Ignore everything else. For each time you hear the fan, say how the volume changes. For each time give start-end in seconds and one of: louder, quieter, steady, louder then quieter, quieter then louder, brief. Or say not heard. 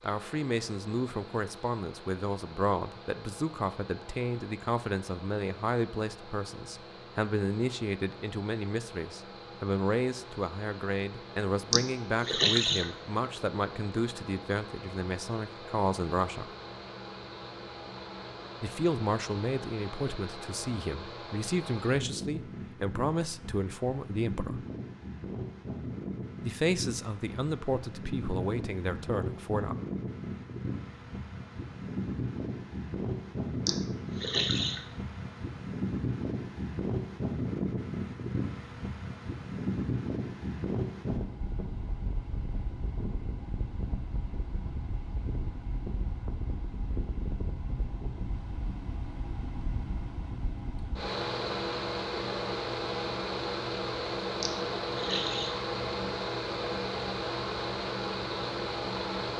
0.0-59.3 louder.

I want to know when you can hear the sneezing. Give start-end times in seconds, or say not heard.
11.7-12.9, 33.6-34.9, 54.4-55.5.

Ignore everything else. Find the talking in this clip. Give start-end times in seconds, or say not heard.
0.0-16.5, 18.6-24.6, 26.4-29.8.